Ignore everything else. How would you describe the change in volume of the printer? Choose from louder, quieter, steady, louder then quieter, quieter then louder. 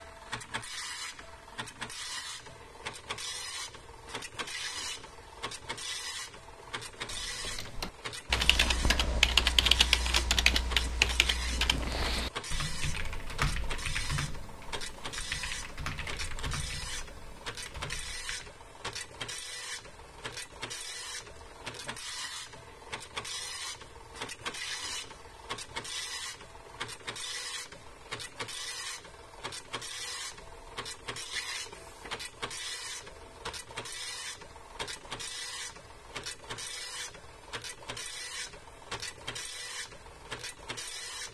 steady.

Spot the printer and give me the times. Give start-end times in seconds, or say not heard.
0.0-41.3.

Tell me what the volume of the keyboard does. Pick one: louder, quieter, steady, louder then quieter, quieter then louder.
quieter.